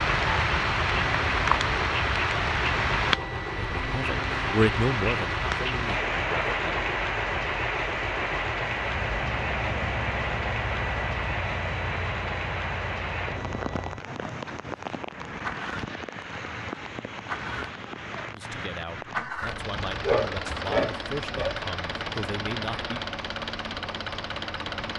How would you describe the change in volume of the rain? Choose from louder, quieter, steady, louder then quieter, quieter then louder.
quieter.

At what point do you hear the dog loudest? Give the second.
20 s.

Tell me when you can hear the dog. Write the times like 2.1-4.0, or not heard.
19.9-21.6.